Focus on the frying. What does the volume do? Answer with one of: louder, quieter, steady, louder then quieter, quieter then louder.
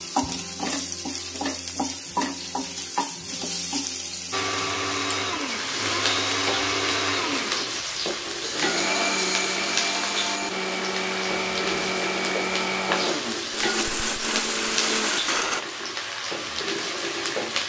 steady.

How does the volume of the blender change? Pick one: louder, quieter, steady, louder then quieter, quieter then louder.
steady.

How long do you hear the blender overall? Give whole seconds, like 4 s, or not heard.
11 s.